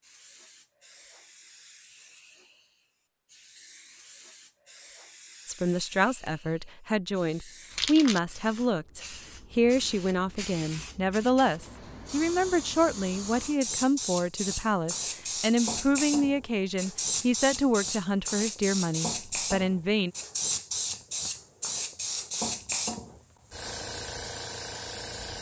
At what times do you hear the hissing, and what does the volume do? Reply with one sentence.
You can hear the hissing from 0.0 to 25.3 s, getting louder.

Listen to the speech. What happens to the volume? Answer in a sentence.
The loudness of the speech stays about the same.